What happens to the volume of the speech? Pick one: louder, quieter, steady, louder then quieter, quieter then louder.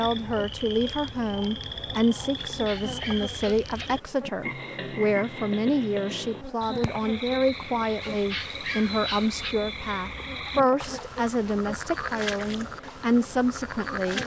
steady.